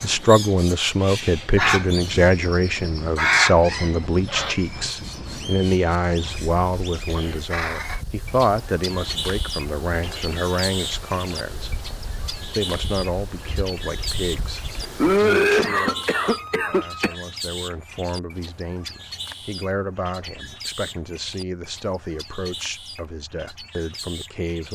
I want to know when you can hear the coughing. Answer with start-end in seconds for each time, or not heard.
7.1-7.5, 15.0-17.1.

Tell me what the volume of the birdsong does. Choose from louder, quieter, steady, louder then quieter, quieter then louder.
quieter.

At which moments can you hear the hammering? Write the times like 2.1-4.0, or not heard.
not heard.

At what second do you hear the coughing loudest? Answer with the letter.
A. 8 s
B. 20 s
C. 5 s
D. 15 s
D.